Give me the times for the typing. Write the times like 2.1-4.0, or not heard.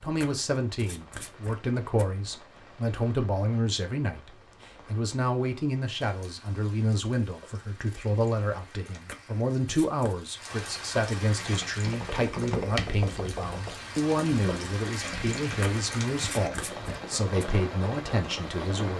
11.3-16.6.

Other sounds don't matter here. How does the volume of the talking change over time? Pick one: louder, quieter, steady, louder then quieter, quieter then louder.
steady.